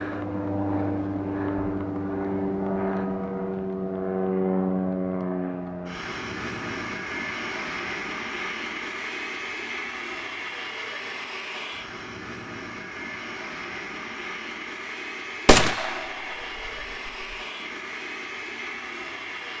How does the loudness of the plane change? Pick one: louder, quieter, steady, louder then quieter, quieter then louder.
quieter.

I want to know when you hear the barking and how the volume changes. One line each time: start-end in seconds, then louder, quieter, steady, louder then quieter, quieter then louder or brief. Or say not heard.
not heard.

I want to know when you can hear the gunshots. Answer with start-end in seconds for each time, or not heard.
15.4-16.1.